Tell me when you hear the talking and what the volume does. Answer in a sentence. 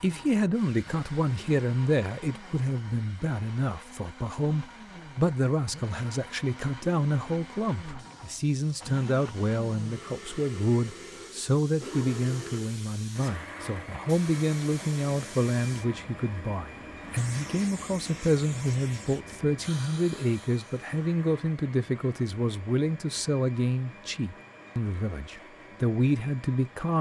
You can hear the talking from 0.0 to 26.9 s, at a steady volume.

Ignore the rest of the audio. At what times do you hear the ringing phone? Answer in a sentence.
You can't hear the ringing phone here.